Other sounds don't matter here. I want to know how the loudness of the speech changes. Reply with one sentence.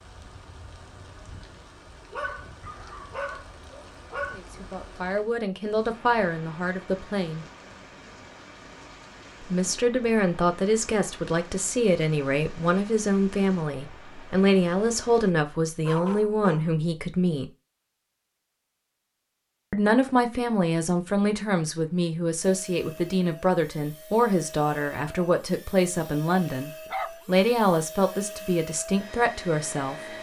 The loudness of the speech stays about the same.